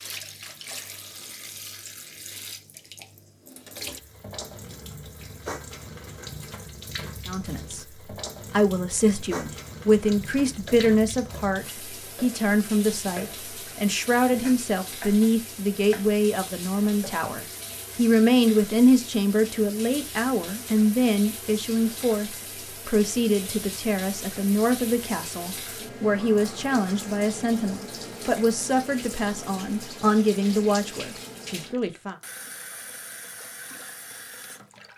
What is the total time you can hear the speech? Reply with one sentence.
You can hear the speech for 25 seconds altogether.